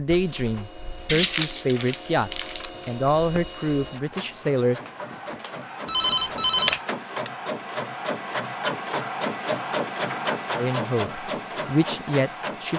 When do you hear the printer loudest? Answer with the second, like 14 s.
10 s.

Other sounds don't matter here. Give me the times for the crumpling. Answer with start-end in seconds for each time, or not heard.
1.1-2.6.